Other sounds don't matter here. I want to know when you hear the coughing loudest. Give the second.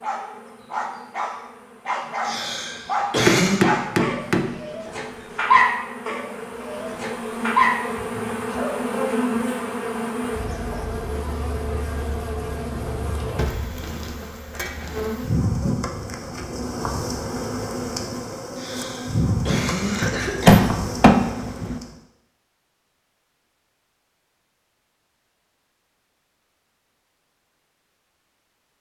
3 s.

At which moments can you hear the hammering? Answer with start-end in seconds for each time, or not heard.
3.2-4.5, 20.0-21.8.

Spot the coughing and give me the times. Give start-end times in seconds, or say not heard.
2.2-3.6, 18.6-20.5.